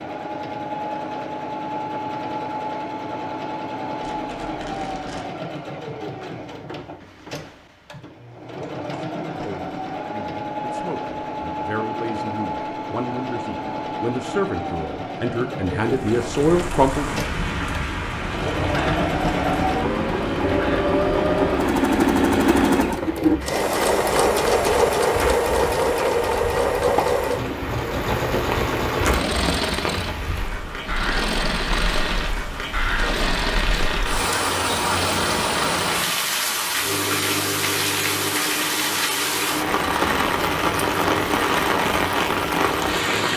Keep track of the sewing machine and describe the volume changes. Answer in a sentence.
The loudness of the sewing machine goes up, then down.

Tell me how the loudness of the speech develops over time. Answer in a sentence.
The volume of the speech goes up.